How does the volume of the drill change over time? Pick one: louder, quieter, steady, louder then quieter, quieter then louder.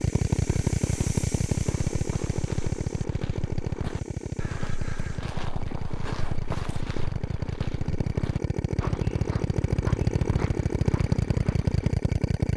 quieter then louder.